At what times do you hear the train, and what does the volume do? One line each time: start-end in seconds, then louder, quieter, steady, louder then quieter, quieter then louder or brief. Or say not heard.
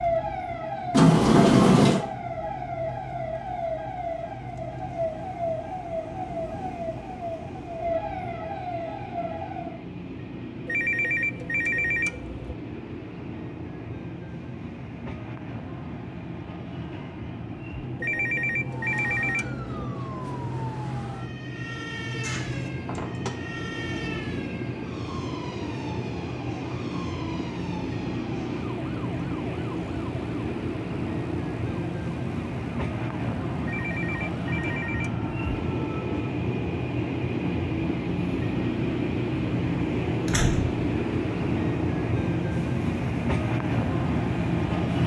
0.0-45.0 louder.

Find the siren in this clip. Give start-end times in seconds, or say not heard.
0.0-9.8, 18.6-36.1.